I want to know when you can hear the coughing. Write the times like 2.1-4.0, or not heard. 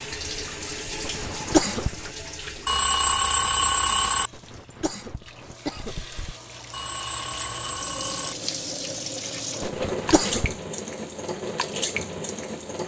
1.0-2.1, 4.3-6.3, 9.6-10.6.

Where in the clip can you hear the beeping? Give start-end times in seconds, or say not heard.
2.6-4.3, 6.7-8.3.